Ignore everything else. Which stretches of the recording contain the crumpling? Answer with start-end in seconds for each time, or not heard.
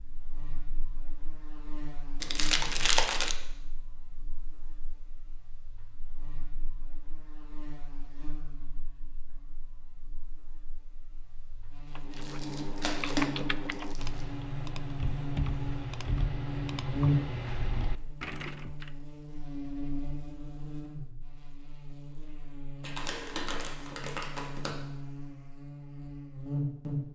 2.2-3.4, 12.1-14.2, 22.8-24.8.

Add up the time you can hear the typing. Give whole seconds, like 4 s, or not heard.
7 s.